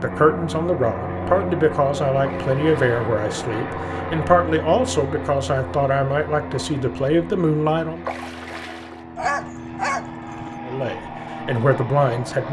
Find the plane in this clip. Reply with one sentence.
The plane can be heard from 0.0 to 12.4 s.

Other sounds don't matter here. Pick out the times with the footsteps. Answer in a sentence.
The footsteps can't be heard in this clip.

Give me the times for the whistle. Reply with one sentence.
The whistle can't be heard in this clip.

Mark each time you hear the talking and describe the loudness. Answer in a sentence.
The talking can be heard from 0.0 to 8.1 s, at a steady volume; and briefly from 10.7 to 12.4 s.